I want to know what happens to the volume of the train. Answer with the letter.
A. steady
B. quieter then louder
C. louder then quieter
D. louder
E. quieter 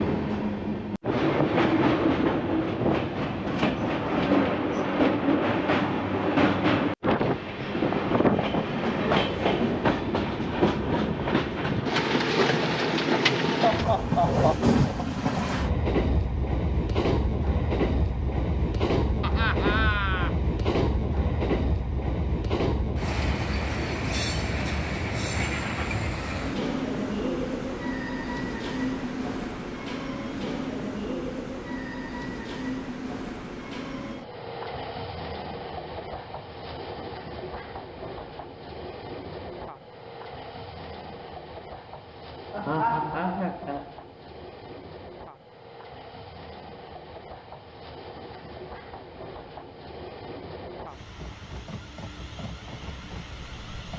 E.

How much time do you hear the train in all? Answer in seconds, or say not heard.
54 s.